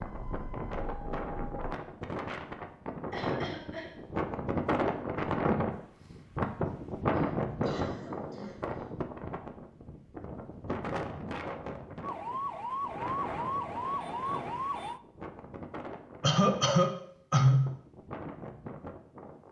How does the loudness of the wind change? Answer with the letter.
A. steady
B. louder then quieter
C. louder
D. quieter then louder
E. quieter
B.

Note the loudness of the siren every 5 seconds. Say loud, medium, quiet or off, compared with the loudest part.
quiet, off, loud, off.